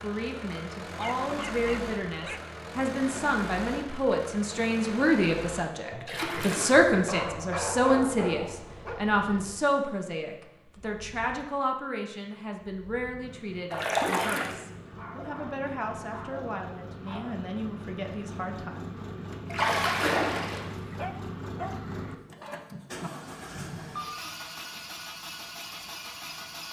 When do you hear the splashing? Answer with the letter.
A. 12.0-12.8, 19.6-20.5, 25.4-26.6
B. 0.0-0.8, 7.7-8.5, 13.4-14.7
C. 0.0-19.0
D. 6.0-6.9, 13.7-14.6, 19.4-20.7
D.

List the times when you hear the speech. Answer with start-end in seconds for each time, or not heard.
0.0-19.0.